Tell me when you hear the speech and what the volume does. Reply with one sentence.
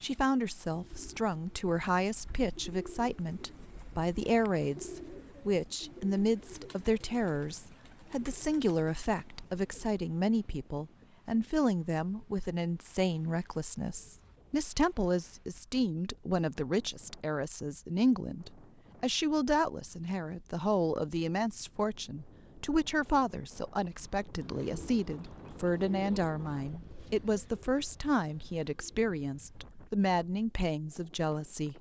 You can hear the speech from 0.0 to 31.7 s, at a steady volume.